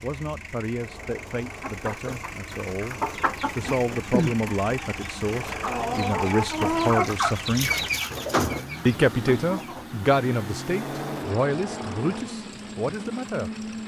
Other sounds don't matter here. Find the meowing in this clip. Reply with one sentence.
The meowing can be heard from 0.8 to 1.8 s, from 5.2 to 6.2 s and from 10.7 to 12.3 s.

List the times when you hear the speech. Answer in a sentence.
You can hear the speech from 0.0 to 7.7 s and from 8.8 to 13.5 s.